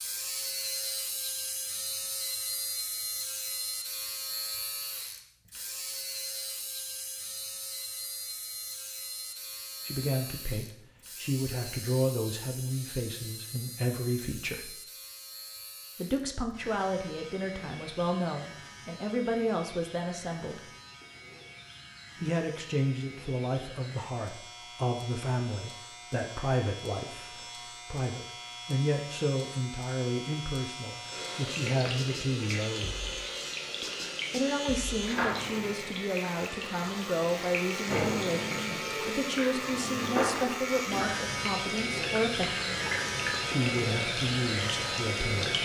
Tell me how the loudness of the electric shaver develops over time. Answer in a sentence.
The volume of the electric shaver goes down, then up.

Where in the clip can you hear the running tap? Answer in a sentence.
You can hear the running tap from 31.1 to 45.5 s.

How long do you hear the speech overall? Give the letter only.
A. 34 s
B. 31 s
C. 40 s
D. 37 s
B.